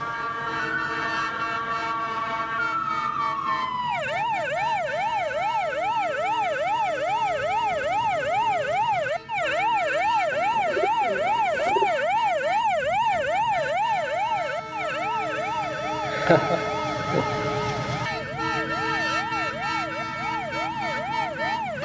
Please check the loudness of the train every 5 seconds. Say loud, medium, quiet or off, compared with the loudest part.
medium, medium, medium, loud, loud.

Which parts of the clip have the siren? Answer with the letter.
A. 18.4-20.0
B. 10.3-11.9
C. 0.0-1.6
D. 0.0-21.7
D.